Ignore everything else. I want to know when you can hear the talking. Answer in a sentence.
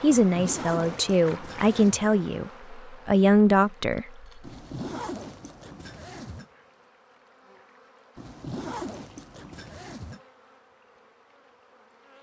You can hear the talking from 0.0 to 4.2 s.